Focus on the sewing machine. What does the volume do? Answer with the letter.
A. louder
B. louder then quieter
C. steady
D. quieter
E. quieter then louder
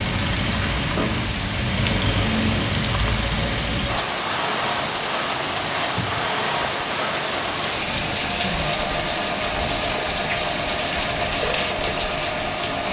C.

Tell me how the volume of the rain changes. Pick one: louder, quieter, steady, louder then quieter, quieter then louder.
steady.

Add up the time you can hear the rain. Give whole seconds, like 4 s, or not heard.
13 s.